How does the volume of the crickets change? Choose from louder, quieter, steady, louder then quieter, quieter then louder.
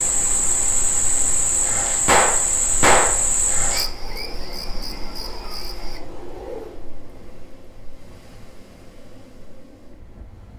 quieter.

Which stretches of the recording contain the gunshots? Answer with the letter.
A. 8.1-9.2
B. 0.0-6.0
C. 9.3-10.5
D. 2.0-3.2
D.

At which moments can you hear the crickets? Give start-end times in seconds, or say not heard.
0.0-6.0.